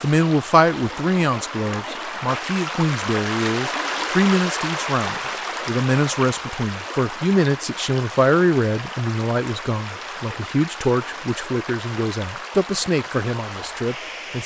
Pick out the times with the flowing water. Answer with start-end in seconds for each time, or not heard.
0.0-14.4.